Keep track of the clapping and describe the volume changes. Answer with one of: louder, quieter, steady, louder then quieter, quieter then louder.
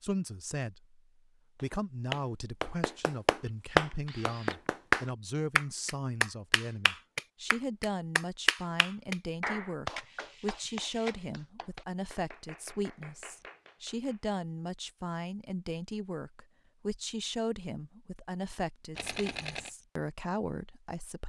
quieter.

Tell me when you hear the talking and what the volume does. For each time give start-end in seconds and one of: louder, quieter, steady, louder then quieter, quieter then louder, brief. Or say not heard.
0.0-1.0 brief
1.6-21.2 steady.